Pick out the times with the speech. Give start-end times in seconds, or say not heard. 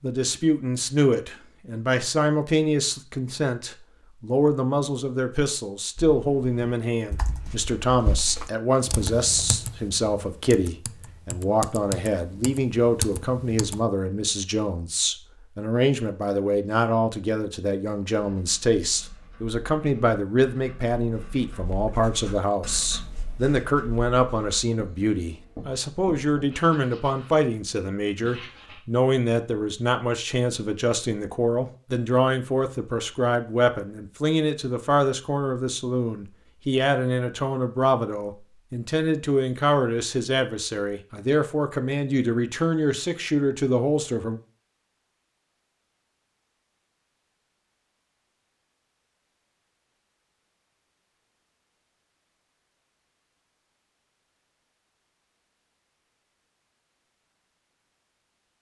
0.0-44.4.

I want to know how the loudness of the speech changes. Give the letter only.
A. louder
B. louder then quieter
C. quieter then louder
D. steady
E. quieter
D.